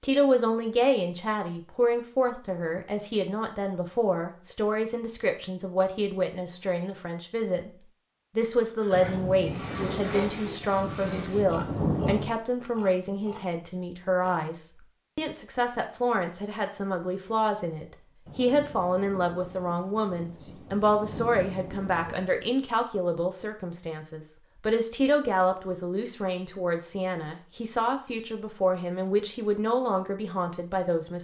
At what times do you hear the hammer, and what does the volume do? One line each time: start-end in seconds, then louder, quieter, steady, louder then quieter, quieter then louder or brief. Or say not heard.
not heard.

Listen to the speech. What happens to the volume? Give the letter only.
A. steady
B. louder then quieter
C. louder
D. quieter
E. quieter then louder
A.